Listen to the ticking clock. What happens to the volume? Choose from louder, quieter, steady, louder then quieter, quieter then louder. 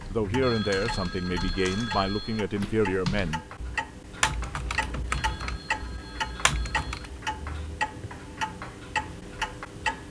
louder.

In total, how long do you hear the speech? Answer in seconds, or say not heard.
3 s.